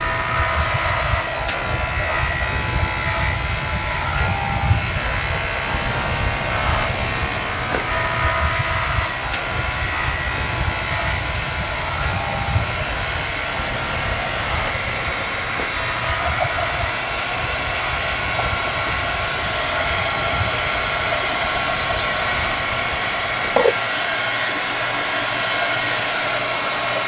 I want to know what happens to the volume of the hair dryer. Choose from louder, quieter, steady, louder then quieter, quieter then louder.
louder.